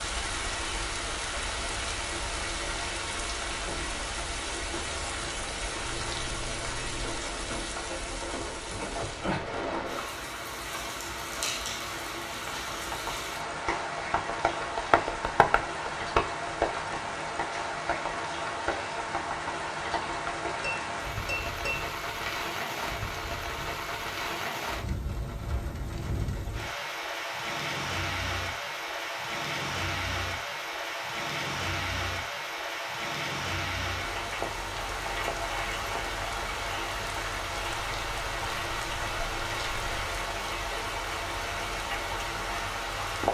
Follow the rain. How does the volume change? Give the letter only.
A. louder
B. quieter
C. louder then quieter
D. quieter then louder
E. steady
E.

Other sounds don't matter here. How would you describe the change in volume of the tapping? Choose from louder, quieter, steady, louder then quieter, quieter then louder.
louder then quieter.